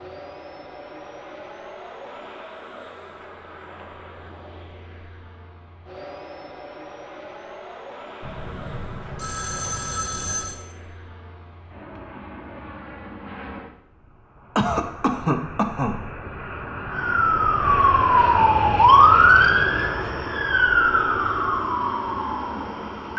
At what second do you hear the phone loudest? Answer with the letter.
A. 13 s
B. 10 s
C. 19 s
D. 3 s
B.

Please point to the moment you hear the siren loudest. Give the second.
19 s.